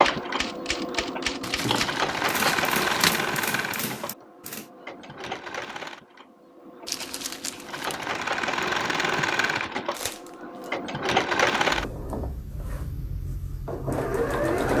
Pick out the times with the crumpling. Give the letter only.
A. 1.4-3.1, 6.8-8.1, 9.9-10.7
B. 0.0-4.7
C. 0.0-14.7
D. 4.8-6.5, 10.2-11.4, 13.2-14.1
A.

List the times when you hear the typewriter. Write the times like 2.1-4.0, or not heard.
0.0-4.7.